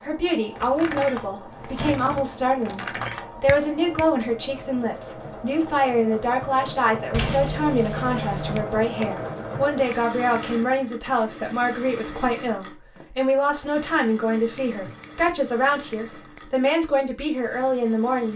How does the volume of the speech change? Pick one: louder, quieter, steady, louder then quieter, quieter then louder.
steady.